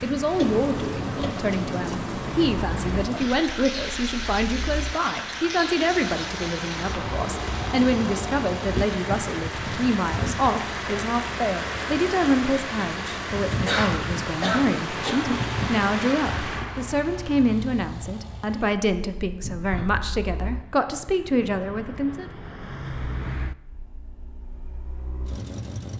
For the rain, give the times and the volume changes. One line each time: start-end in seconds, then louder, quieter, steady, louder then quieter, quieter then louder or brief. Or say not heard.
0.0-16.6 steady.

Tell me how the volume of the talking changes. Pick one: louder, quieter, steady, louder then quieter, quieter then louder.
steady.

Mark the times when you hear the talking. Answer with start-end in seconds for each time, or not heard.
0.0-22.3.